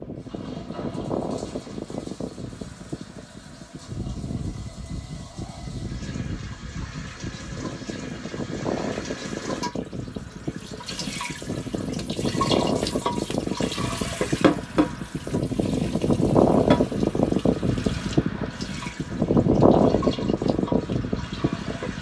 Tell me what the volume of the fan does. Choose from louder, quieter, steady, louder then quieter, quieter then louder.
louder.